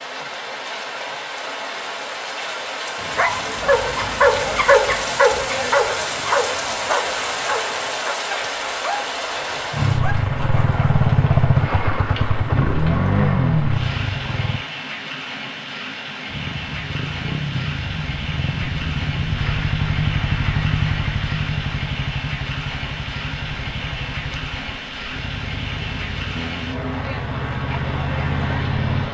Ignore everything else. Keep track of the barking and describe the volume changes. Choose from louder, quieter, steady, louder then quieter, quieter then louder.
quieter.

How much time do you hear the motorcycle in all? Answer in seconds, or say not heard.
18 s.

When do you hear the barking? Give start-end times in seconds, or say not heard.
3.0-10.9.